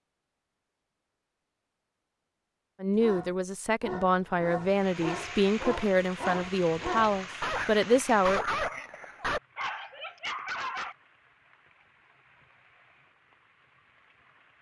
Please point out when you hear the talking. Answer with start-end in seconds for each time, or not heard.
2.8-8.4.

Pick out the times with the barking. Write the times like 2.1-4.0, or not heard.
3.0-10.9.